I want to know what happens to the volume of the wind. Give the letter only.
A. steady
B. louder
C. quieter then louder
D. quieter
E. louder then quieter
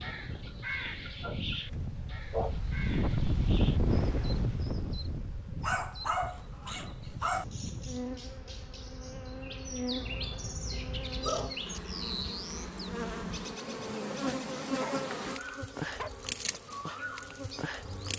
E.